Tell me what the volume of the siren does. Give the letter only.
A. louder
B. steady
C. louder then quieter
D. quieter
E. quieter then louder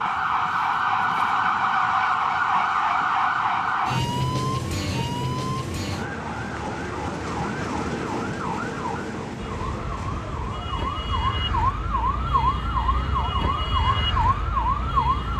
E.